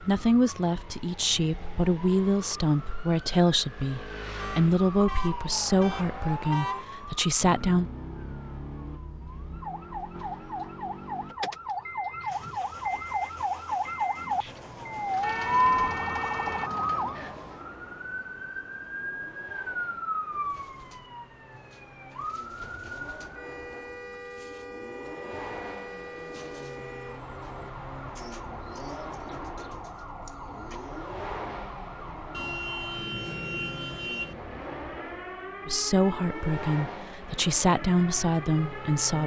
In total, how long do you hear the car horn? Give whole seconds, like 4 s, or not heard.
6 s.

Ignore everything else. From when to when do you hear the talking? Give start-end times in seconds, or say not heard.
0.0-7.9, 35.6-39.2.